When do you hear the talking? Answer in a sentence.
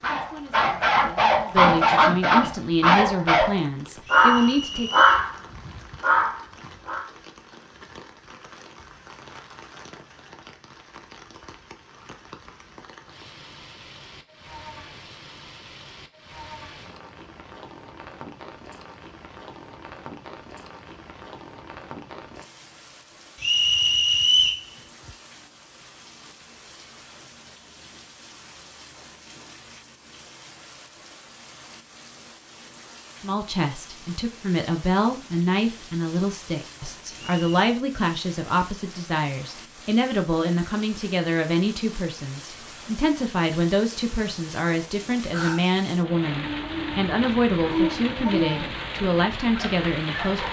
The talking can be heard from 0.1 to 4.9 s and from 33.2 to 50.4 s.